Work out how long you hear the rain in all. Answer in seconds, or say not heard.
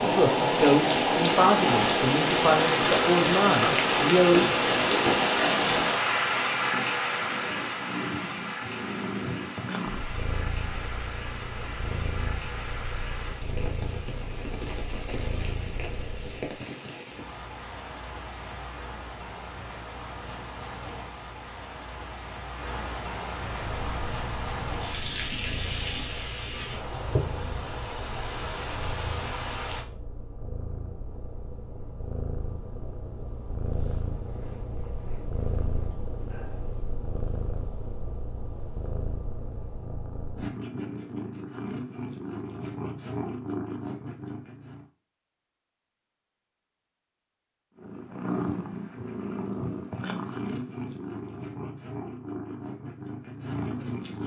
30 s.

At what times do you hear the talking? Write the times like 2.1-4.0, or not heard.
0.0-4.5.